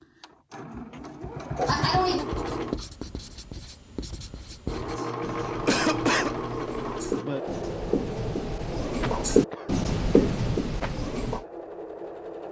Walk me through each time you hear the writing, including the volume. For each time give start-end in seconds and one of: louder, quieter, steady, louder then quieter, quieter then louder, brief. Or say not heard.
1.8-11.4 louder.